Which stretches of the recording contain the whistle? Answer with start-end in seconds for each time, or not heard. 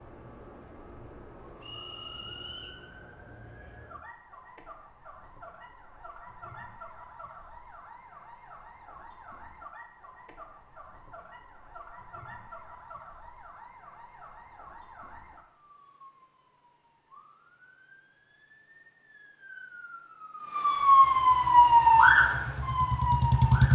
1.6-2.8.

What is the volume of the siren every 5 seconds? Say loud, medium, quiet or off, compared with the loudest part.
quiet, quiet, quiet, quiet, loud.